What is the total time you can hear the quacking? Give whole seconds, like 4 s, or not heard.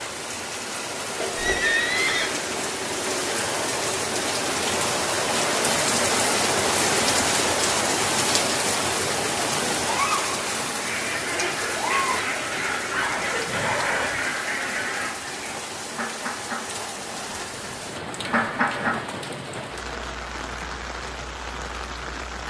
8 s.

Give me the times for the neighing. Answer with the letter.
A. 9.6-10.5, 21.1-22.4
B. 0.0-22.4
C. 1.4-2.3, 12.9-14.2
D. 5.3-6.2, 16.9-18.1
C.